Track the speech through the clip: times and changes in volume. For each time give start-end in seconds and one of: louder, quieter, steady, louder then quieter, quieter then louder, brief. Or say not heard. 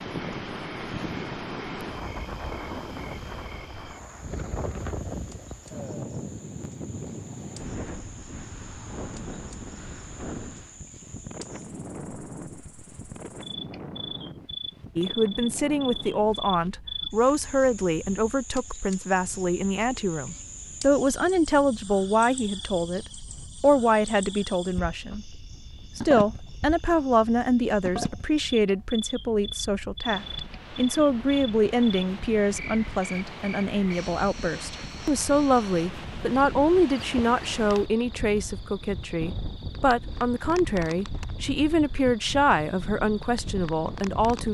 14.9-44.4 steady.